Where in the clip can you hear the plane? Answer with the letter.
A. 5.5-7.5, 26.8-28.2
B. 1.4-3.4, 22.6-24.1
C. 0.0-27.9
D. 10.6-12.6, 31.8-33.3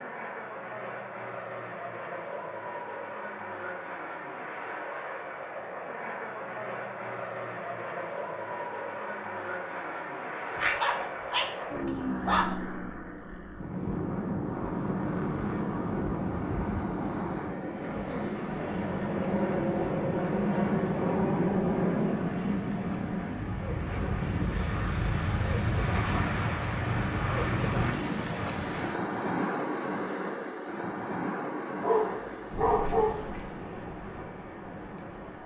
C.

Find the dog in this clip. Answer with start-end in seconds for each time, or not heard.
10.6-12.6, 31.8-33.3.